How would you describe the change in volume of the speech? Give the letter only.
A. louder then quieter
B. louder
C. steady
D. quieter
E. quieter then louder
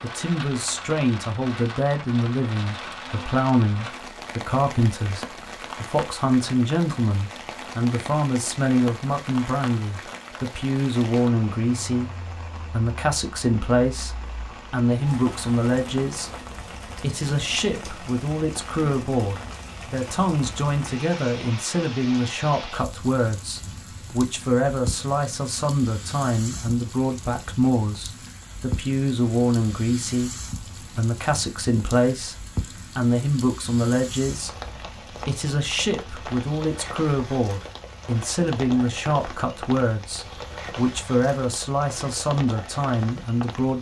C.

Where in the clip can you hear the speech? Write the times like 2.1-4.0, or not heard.
0.0-43.7.